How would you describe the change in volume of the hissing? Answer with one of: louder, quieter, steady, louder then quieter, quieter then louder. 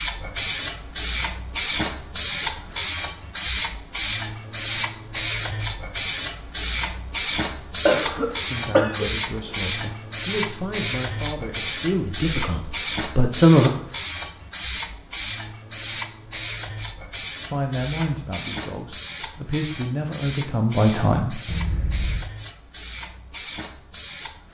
quieter.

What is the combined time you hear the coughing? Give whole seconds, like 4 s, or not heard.
2 s.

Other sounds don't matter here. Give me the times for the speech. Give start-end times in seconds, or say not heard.
8.4-13.7, 17.4-21.4.